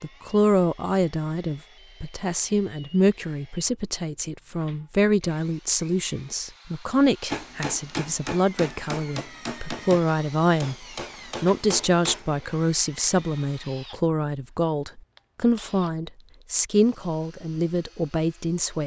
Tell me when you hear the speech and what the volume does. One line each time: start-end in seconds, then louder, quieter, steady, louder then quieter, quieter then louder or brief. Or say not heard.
0.0-18.8 steady.